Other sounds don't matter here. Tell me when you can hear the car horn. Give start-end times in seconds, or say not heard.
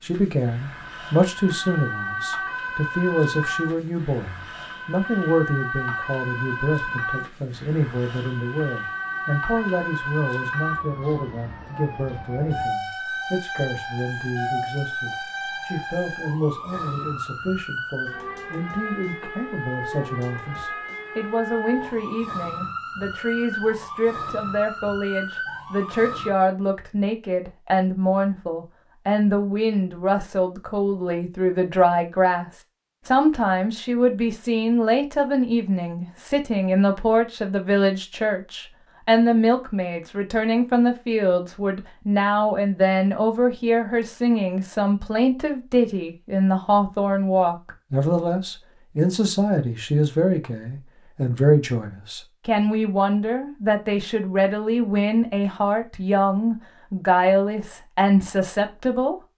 not heard.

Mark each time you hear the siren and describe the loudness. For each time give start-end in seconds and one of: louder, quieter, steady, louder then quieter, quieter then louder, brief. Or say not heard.
0.0-26.3 steady.